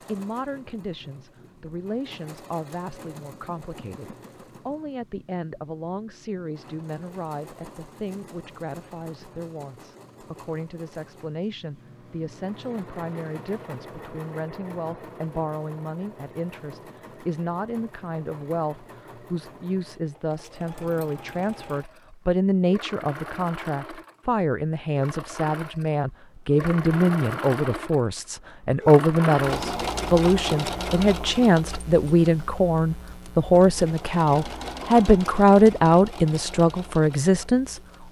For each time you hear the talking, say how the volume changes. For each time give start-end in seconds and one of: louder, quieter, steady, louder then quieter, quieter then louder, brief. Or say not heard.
0.1-37.8 louder.